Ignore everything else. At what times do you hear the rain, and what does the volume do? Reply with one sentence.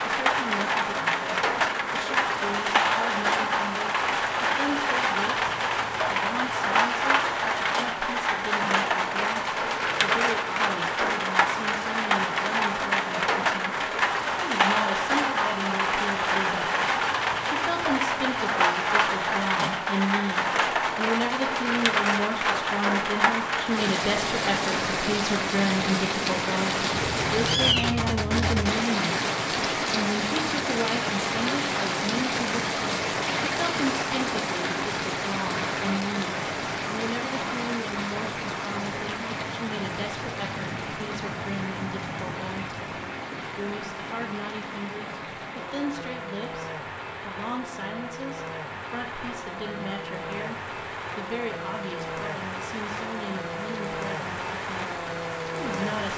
The rain can be heard from 0.0 to 56.1 s, getting quieter.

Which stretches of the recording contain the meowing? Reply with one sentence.
You can hear the meowing from 26.9 to 28.9 s.